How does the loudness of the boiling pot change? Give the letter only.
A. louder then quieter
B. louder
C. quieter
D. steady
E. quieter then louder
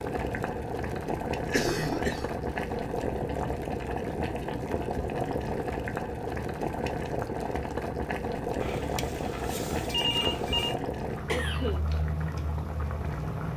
D.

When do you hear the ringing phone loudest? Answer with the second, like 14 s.
10 s.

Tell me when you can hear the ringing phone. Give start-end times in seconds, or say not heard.
8.6-10.8.